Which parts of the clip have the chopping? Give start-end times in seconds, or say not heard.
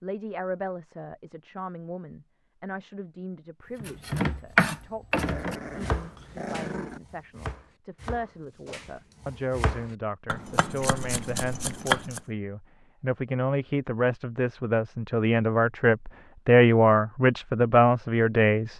3.8-12.2.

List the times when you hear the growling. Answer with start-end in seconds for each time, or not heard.
5.2-7.0.